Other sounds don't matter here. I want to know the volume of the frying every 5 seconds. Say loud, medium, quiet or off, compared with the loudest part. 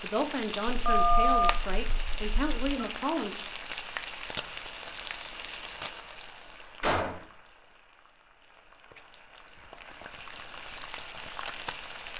loud, medium, loud.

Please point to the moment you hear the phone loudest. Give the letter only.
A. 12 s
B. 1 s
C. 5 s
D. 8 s
B.